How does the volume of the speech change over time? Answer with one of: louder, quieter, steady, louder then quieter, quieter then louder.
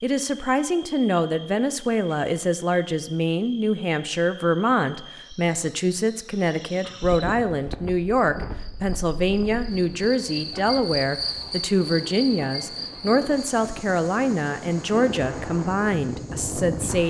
steady.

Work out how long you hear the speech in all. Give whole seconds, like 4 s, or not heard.
17 s.